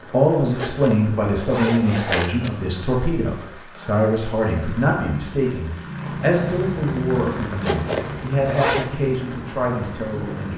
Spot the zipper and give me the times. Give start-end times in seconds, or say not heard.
0.6-2.5, 7.5-8.9.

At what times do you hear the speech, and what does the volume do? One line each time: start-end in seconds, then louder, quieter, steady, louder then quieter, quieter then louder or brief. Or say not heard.
0.1-10.5 steady.